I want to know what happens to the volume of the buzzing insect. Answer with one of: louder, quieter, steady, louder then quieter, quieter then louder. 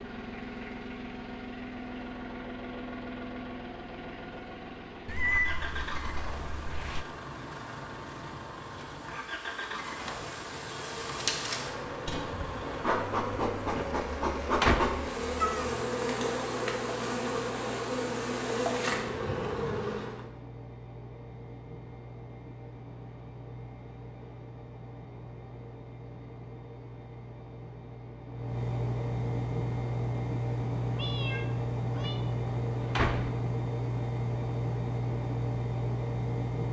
louder.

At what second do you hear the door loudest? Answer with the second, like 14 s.
15 s.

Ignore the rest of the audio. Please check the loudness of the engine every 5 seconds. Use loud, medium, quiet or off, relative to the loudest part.
medium, medium, medium, quiet, quiet, medium, loud, loud.